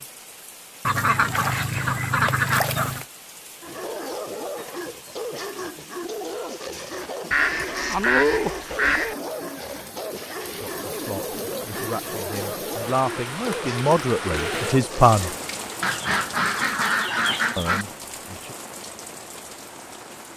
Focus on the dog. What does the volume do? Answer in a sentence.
The loudness of the dog stays about the same.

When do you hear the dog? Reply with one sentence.
The dog can be heard from 3.6 to 15.4 s.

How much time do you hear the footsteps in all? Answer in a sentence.
You can't hear the footsteps here.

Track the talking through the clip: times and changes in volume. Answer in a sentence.
You can hear the talking from 10.6 to 15.3 s, getting louder; and briefly from 17.6 to 18.6 s.